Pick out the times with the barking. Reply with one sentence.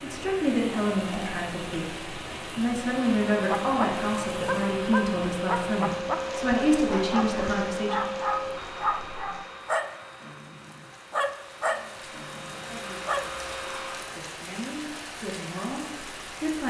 The barking can be heard from 3.4 to 13.2 s.